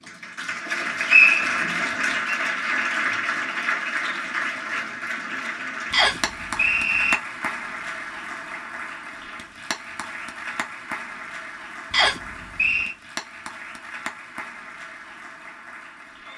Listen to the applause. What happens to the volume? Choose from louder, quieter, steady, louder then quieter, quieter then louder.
quieter.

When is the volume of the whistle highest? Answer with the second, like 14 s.
1 s.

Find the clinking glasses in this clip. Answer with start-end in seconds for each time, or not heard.
not heard.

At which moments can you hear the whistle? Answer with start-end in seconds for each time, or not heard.
0.7-2.4, 5.9-7.2, 11.9-12.9.